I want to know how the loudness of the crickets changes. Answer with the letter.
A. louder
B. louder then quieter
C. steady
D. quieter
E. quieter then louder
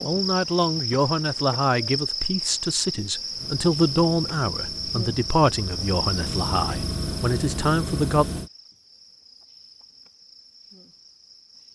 D.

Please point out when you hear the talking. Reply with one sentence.
The talking can be heard from 0.0 to 8.2 s.